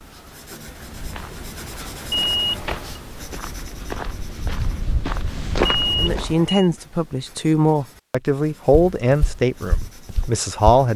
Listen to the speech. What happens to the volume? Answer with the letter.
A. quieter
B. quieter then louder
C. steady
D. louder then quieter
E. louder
A.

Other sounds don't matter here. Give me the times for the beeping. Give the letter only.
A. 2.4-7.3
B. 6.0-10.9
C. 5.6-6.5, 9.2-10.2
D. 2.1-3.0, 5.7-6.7
D.